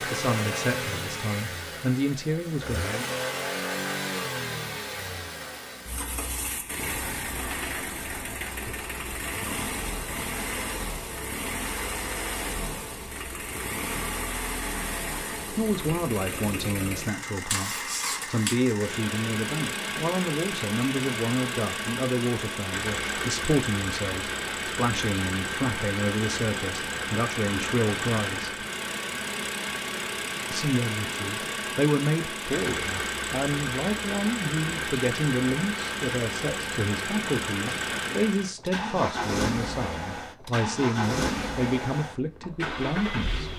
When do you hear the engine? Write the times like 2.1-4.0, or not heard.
0.0-43.5.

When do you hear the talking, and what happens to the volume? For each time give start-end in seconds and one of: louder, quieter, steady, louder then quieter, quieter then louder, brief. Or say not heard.
0.0-2.8 brief
15.5-28.5 steady
30.5-43.5 steady.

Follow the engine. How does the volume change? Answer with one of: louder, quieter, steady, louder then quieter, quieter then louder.
steady.